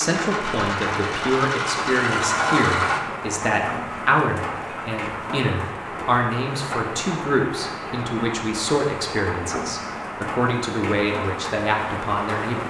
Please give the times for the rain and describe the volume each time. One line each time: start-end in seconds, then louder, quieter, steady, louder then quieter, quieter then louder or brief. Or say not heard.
0.0-12.6 steady.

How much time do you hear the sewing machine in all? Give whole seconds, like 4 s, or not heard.
3 s.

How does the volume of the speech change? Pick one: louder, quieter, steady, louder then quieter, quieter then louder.
steady.